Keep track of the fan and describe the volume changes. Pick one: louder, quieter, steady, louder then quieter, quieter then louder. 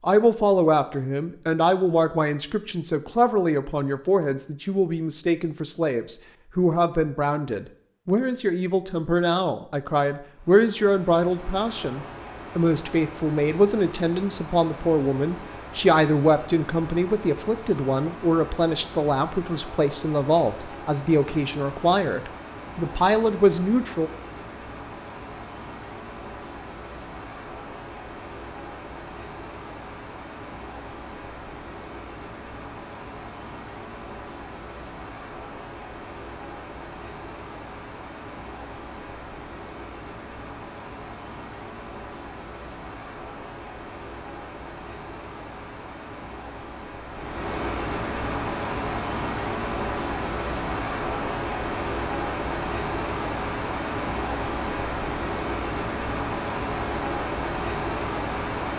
louder.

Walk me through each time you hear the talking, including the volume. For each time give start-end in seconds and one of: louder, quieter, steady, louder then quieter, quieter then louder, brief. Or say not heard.
0.0-24.1 steady.